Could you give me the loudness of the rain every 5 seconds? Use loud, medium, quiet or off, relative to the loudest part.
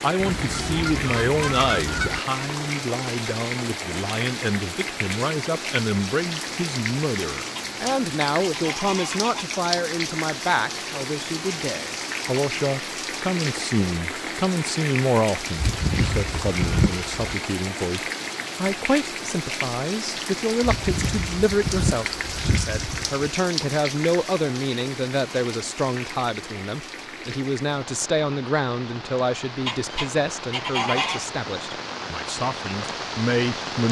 loud, loud, loud, loud, loud, medium, loud.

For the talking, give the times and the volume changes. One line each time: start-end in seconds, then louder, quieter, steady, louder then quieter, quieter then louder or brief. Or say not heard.
0.0-33.8 steady.